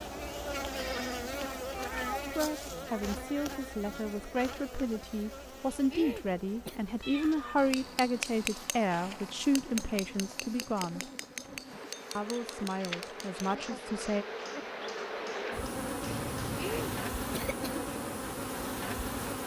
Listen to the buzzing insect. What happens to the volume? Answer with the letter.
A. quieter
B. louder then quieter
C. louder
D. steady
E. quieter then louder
E.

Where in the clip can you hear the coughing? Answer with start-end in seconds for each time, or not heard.
5.9-6.8, 16.6-17.9.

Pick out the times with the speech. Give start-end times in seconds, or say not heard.
2.2-11.1, 12.2-14.2.